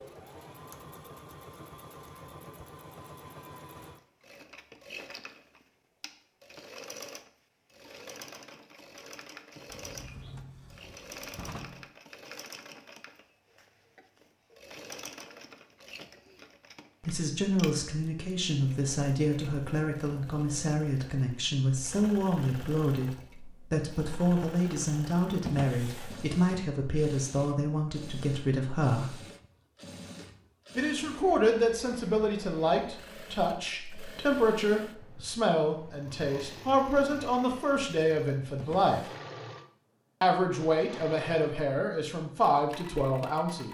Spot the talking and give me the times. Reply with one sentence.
The talking can be heard from 17.0 to 29.1 s, from 30.8 to 39.0 s and from 40.2 to 43.7 s.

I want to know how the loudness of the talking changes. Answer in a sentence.
The volume of the talking stays about the same.